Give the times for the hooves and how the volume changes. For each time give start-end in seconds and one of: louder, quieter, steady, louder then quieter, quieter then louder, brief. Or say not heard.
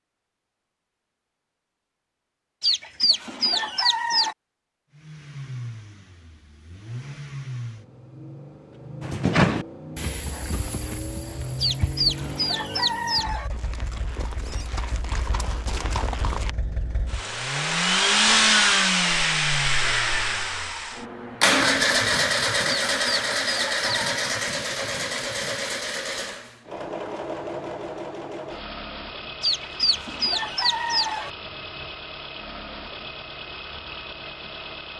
9.0-16.6 quieter then louder.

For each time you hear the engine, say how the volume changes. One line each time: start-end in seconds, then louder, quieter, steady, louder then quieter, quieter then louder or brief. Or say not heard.
4.9-34.9 louder then quieter.